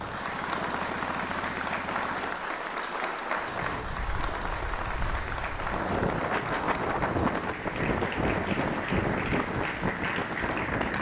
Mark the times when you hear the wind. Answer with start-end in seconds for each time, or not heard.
3.4-10.9.